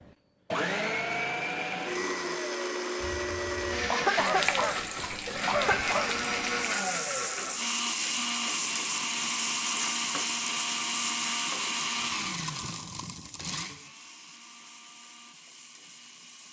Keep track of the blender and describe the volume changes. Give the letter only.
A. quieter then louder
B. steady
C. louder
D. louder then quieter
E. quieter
E.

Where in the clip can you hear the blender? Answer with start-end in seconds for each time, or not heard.
0.0-16.4.